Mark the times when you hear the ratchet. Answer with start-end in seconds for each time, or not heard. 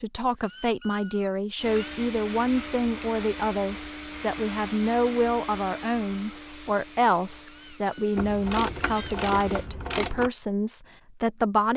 8.2-10.3.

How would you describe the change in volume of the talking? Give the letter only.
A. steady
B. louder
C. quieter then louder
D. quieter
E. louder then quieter
A.